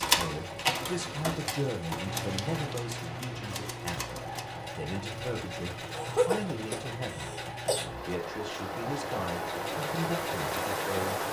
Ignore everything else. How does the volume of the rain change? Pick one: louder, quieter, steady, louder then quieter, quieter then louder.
quieter then louder.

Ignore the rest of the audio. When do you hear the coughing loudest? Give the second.
6 s.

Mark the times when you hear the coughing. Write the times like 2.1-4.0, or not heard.
5.9-7.8.